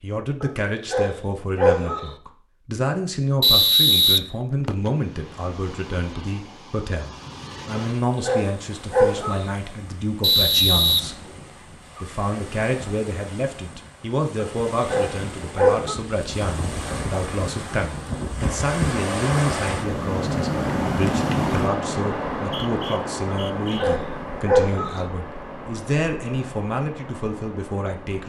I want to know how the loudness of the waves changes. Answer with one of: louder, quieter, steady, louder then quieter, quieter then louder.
louder then quieter.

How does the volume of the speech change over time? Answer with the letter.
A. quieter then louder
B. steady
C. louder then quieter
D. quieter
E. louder
B.